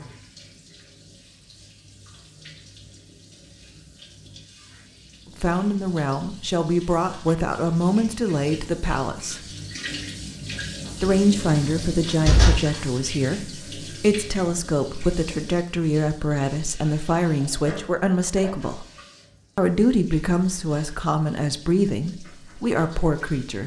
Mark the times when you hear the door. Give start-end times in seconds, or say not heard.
10.8-12.6.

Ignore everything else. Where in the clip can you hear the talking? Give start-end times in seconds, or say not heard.
5.4-9.4, 11.0-18.9, 19.6-23.6.